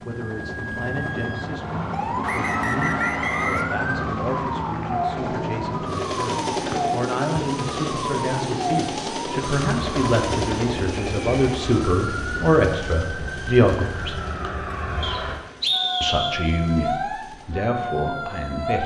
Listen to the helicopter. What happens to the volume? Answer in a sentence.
The loudness of the helicopter goes down.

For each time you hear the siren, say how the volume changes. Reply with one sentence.
You can hear the siren from 0.1 to 18.8 s, at a steady volume.